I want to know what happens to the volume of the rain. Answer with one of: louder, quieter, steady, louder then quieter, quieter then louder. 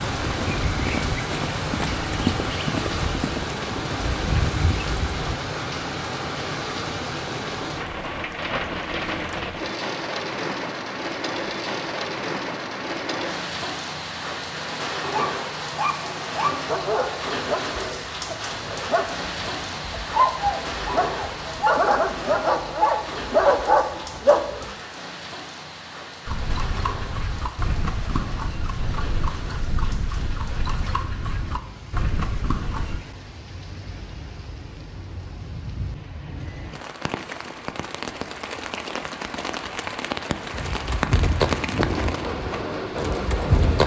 quieter then louder.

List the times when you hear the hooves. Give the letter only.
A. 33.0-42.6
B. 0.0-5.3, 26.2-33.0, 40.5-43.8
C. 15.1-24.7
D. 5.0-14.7
B.